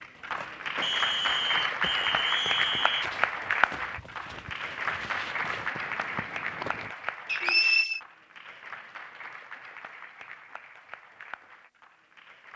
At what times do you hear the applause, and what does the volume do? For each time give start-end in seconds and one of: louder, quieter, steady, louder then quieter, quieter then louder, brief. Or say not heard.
0.0-12.5 quieter.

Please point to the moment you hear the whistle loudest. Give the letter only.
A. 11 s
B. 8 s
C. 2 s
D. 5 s
B.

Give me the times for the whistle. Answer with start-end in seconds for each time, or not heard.
0.8-3.0, 7.2-8.0.